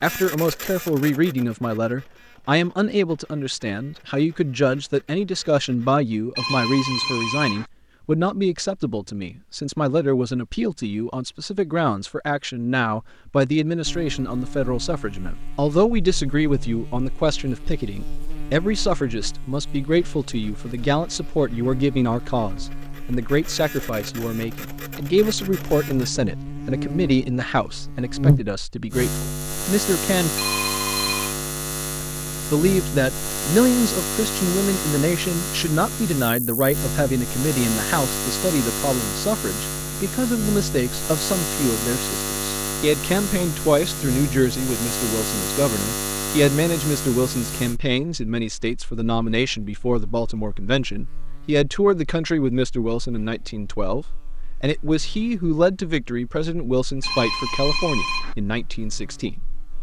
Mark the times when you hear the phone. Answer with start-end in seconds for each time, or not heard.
6.3-7.7, 30.4-31.4, 57.0-58.4.